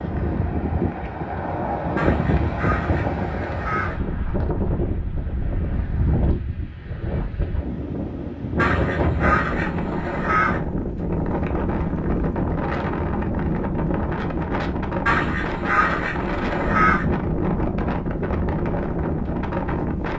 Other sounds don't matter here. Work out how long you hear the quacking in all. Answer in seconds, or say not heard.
6 s.